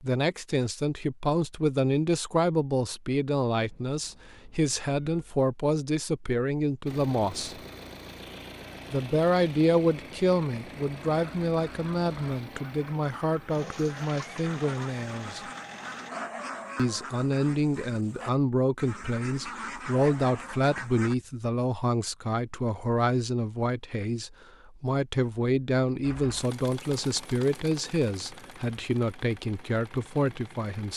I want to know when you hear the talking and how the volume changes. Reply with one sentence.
You can hear the talking from 0.0 to 7.5 s, at a steady volume; from 8.9 to 15.4 s, getting quieter; and from 16.8 to 30.9 s, at a steady volume.